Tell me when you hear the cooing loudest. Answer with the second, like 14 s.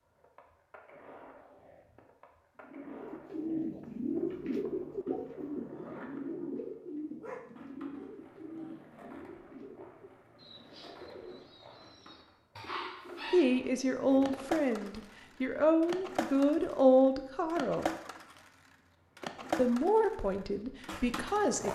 4 s.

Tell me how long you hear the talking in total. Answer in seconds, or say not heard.
7 s.